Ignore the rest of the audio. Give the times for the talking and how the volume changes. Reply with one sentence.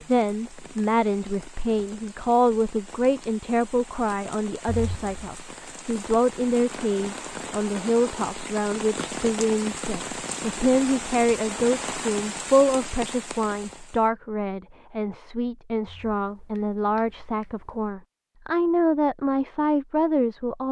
The talking can be heard from 0.1 to 20.6 s, at a steady volume.